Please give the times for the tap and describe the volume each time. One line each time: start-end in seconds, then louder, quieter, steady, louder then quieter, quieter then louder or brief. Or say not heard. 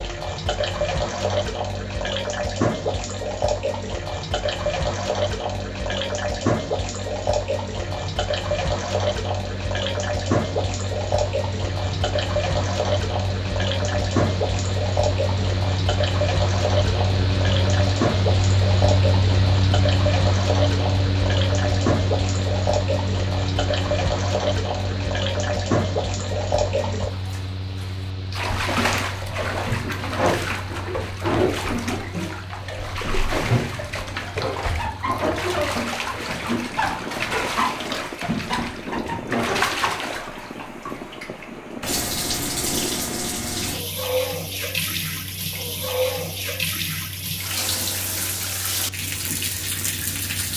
0.0-50.5 steady.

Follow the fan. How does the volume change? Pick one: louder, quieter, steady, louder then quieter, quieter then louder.
louder then quieter.